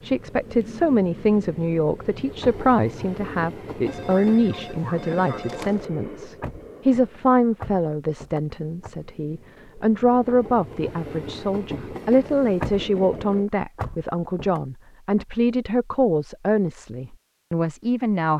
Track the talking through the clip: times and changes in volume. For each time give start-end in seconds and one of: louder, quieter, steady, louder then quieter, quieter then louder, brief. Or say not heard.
0.0-18.3 steady.